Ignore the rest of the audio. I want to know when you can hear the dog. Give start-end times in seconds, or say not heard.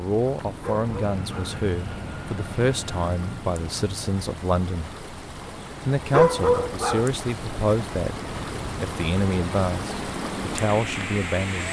0.6-1.6, 6.1-7.1.